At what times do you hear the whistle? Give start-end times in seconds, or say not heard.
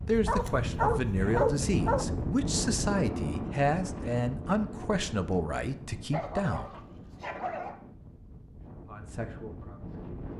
not heard.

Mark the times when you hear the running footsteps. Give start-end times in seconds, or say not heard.
not heard.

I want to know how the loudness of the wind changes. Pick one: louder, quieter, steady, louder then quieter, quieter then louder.
quieter.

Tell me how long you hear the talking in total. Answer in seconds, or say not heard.
8 s.